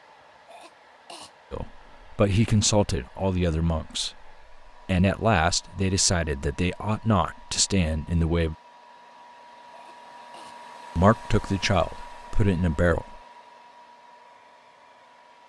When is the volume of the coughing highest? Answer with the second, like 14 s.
1 s.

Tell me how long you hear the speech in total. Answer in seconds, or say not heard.
9 s.